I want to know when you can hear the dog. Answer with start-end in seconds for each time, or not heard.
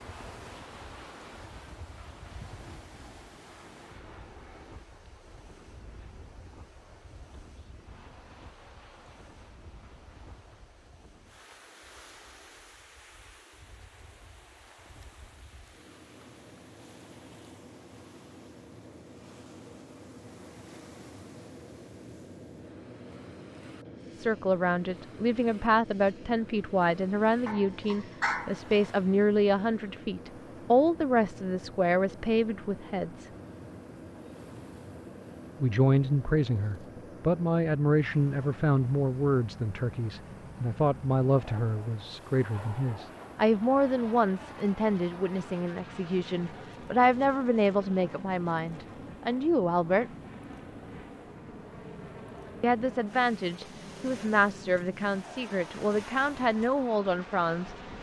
27.4-28.9.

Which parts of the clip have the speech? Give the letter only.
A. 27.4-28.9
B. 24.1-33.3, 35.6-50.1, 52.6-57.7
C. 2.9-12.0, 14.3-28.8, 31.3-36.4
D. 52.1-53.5
B.